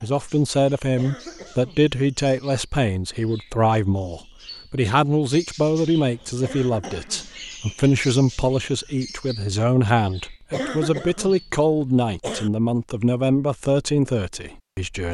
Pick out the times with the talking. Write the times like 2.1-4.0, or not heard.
0.0-15.0.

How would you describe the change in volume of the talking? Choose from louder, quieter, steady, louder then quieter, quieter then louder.
steady.